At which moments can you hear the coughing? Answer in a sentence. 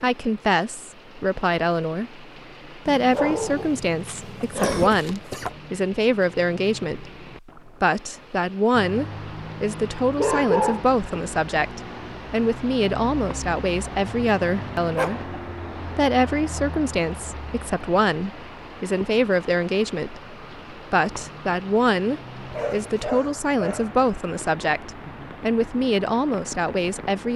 You can hear the coughing from 4.0 to 5.5 s.